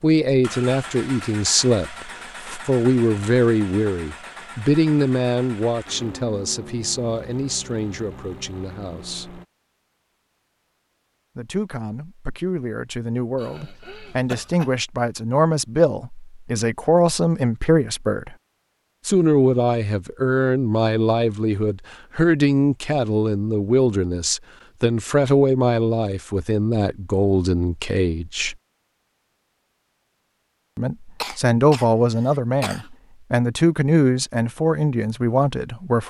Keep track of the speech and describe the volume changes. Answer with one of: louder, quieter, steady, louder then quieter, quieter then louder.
quieter then louder.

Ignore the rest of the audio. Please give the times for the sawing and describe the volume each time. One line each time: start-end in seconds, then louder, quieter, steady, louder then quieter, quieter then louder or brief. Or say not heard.
not heard.